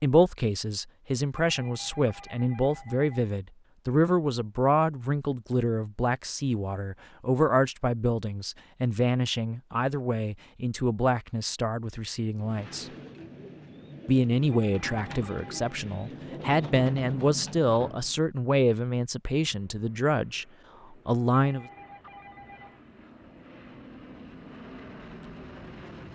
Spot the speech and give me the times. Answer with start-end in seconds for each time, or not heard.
0.0-12.8, 14.1-20.4, 21.1-21.6.